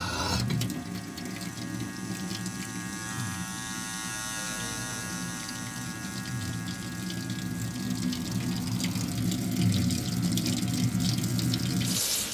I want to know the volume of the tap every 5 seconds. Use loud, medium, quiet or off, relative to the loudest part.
medium, loud, loud.